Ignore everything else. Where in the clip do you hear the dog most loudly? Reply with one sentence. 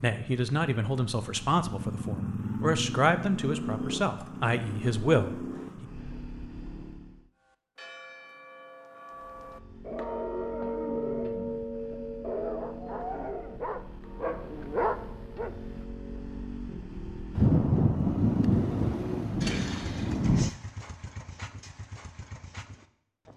The volume of the dog peaks at 15 seconds.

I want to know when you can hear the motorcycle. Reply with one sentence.
The motorcycle can be heard from 0.0 to 7.3 s and from 9.1 to 23.3 s.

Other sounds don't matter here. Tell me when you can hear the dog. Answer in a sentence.
You can hear the dog from 9.8 to 15.6 s.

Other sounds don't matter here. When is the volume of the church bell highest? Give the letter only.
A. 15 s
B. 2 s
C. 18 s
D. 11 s
D.